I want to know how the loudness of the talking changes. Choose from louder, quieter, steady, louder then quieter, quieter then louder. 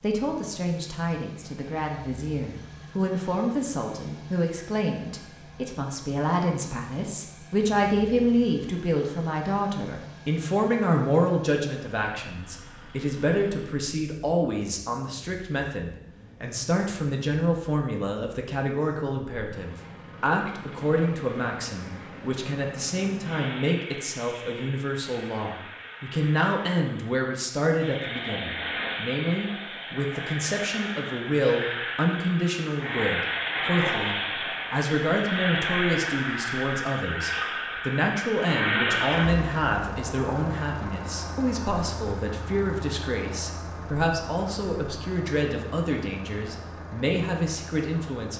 steady.